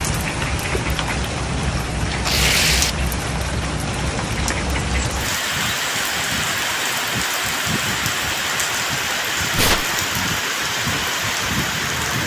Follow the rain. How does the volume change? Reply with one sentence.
The loudness of the rain stays about the same.